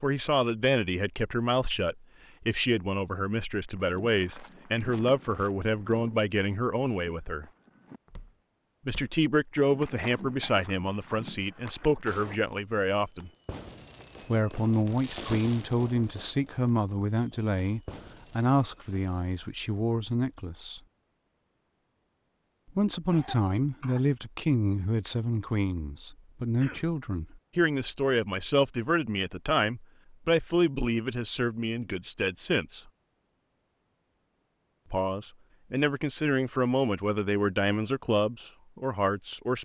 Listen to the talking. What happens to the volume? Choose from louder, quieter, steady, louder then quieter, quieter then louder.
steady.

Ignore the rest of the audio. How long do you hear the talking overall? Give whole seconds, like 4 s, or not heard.
33 s.